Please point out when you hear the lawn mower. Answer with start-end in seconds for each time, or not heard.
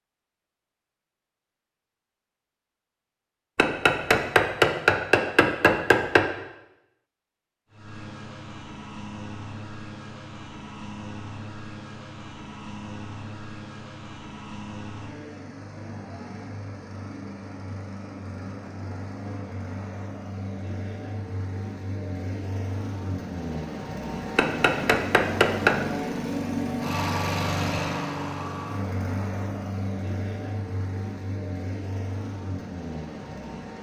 7.7-33.7.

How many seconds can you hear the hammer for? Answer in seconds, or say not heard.
4 s.